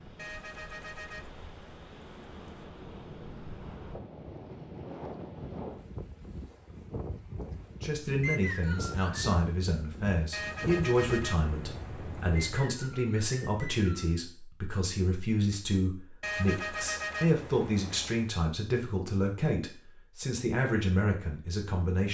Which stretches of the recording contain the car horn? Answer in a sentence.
You can hear the car horn from 0.1 to 2.7 s, from 10.3 to 12.6 s and from 16.2 to 18.3 s.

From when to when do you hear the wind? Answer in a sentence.
You can hear the wind from 0.0 to 12.4 s.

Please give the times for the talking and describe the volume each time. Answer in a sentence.
You can hear the talking from 7.8 to 22.0 s, at a steady volume.